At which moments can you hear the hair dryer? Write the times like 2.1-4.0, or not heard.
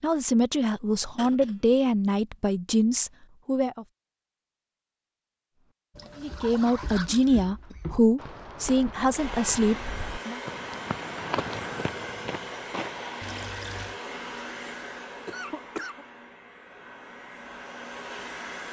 9.2-18.6.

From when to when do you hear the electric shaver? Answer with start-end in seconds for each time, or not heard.
not heard.